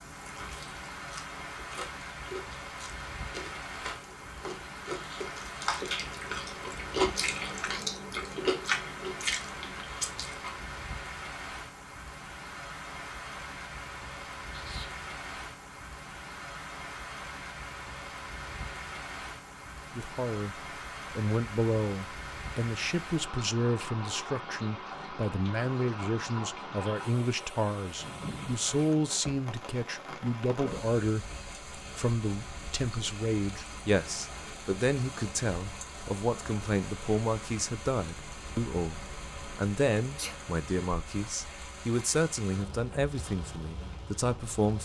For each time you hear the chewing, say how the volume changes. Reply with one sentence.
You can hear the chewing from 0.2 to 10.8 s, getting louder.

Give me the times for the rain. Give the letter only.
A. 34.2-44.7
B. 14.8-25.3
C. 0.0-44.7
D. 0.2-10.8
C.